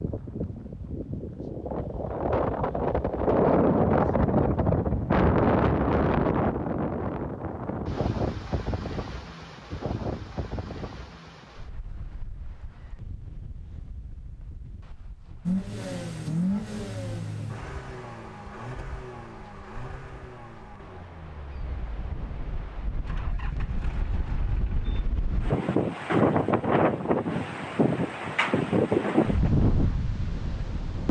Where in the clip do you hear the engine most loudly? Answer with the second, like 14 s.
16 s.